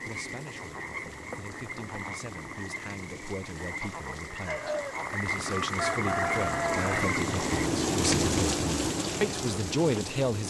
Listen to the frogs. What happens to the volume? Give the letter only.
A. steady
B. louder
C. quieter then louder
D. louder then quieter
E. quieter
B.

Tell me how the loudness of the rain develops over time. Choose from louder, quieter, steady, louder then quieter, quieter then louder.
louder.